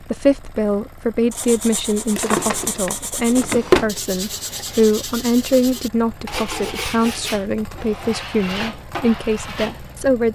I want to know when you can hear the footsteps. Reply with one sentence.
You can't hear the footsteps here.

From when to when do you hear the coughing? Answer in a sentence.
The coughing can't be heard in this clip.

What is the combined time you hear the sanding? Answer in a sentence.
You can hear the sanding for 9 seconds altogether.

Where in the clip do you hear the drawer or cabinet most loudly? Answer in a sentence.
The volume of the drawer or cabinet peaks at 4 seconds.